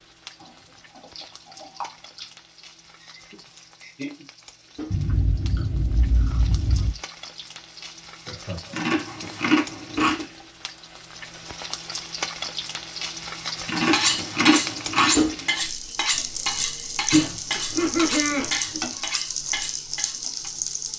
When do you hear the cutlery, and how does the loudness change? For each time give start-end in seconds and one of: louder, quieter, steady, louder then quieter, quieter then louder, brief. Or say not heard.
13.9-20.5 quieter.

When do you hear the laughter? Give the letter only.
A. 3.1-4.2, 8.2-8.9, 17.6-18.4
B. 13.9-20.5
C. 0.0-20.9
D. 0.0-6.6
A.